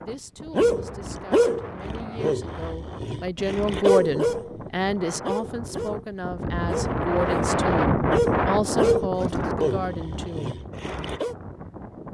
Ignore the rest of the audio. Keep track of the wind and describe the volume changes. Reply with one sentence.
The loudness of the wind goes up, then down.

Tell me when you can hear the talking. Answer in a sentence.
You can hear the talking from 0.0 to 10.6 s.